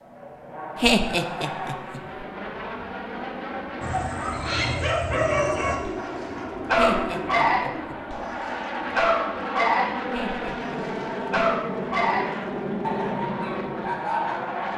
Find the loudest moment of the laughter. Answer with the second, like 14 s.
1 s.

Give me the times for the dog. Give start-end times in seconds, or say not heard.
3.8-14.3.